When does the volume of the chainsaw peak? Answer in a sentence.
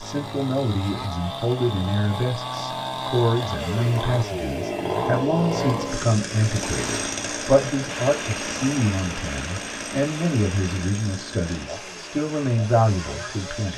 The volume of the chainsaw peaks at 5 seconds.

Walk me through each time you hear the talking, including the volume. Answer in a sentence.
The talking can be heard from 0.0 to 13.7 s, at a steady volume.